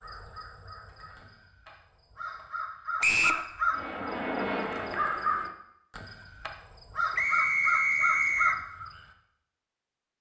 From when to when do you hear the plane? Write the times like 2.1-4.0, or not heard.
3.7-5.5.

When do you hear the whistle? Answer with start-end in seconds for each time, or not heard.
3.0-3.5, 7.2-8.6.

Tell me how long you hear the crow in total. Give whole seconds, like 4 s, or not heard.
9 s.